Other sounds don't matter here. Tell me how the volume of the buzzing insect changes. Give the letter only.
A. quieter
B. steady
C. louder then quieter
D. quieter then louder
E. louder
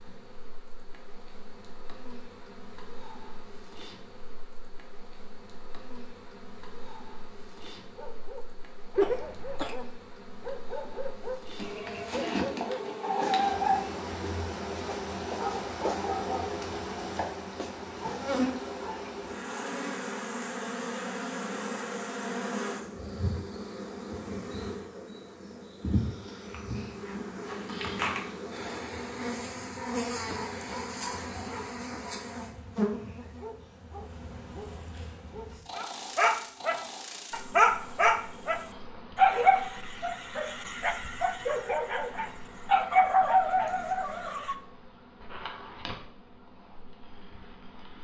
C.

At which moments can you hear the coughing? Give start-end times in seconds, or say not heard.
8.9-9.8.